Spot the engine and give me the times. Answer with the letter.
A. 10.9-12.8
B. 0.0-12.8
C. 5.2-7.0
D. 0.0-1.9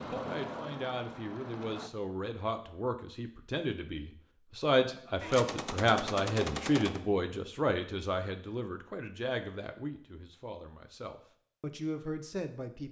D.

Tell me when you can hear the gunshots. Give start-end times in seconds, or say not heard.
5.2-7.0.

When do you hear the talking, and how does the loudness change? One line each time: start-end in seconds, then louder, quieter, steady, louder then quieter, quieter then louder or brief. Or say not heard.
0.0-12.8 louder then quieter.